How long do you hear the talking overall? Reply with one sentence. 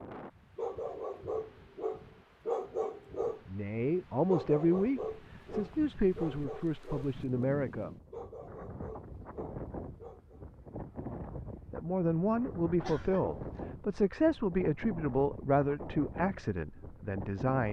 You can hear the talking for 10 seconds altogether.